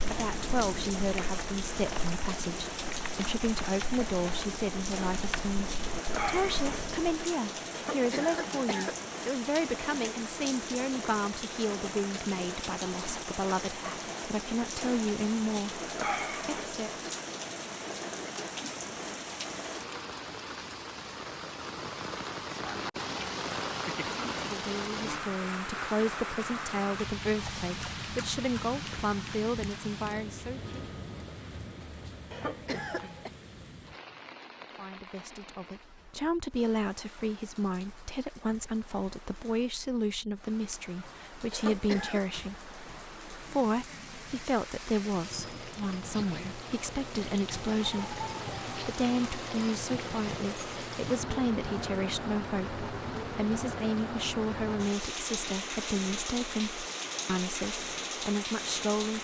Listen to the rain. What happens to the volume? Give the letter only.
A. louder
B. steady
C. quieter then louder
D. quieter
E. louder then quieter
C.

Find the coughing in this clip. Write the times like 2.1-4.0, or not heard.
7.7-9.1, 32.3-33.3, 41.5-42.2.